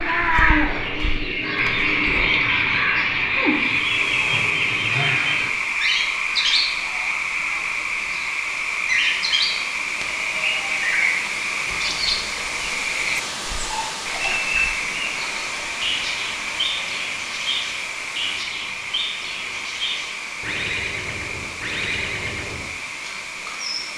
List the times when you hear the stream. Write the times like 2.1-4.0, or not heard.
3.5-23.9.